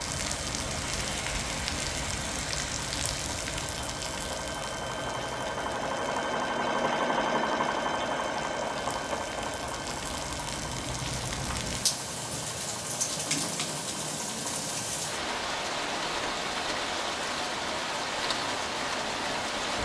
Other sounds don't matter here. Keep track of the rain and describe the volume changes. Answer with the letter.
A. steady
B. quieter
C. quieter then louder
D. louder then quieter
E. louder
C.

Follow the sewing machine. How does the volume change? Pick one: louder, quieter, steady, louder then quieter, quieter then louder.
louder then quieter.